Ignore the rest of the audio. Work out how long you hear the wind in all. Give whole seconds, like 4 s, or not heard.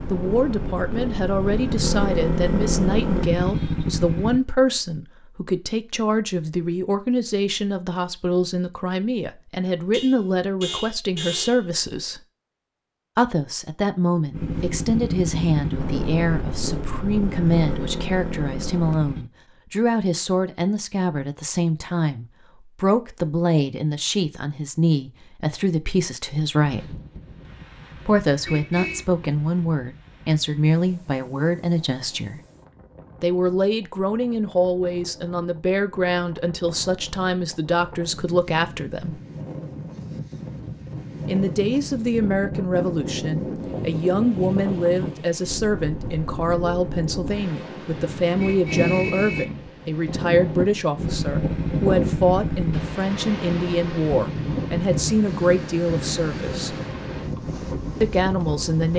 32 s.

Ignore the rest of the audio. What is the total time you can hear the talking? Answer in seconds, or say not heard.
53 s.